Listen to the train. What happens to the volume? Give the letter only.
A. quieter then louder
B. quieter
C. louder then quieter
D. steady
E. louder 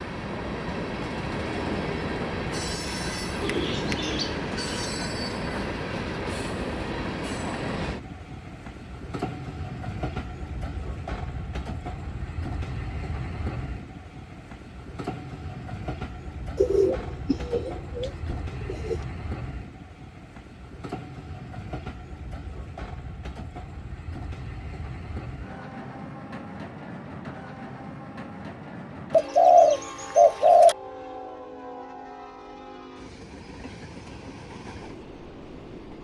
B.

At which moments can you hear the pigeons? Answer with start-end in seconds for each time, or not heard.
3.4-4.7, 16.6-19.0, 29.1-30.8.